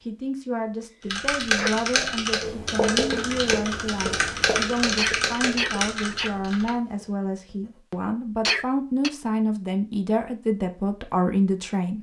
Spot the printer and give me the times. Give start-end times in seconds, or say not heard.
not heard.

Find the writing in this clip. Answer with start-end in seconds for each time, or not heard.
2.4-7.8.